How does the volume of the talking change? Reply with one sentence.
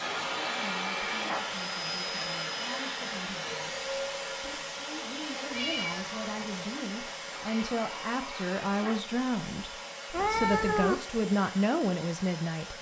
The loudness of the talking goes up.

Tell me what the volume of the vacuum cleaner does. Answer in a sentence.
The volume of the vacuum cleaner goes down.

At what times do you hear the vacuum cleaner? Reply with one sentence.
You can hear the vacuum cleaner from 0.0 to 12.7 s.